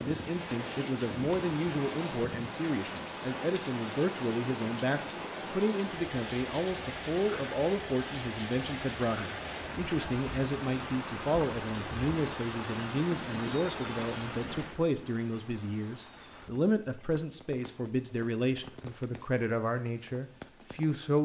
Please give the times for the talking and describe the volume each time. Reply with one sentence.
You can hear the talking from 0.0 to 21.2 s, at a steady volume.